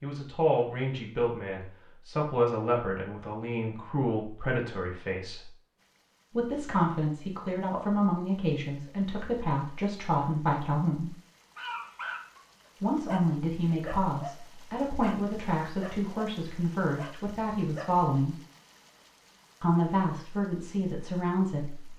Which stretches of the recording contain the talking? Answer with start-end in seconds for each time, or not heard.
0.0-5.5, 6.3-11.2, 12.8-18.4, 19.6-21.9.